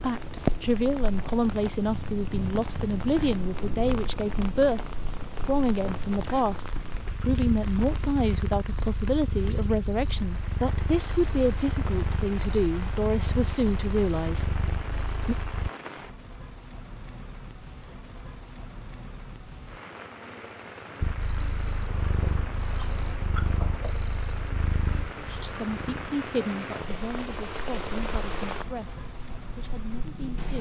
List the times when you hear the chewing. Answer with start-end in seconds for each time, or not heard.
21.7-23.9.